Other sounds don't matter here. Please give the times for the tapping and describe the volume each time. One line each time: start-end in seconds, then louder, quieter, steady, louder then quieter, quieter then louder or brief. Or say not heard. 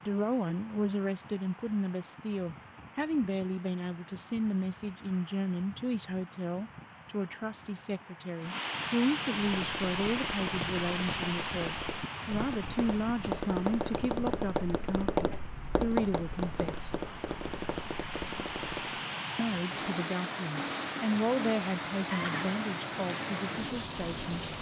9.3-19.1 louder then quieter.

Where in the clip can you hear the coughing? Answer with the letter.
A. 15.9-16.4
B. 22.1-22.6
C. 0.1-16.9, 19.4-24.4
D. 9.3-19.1
B.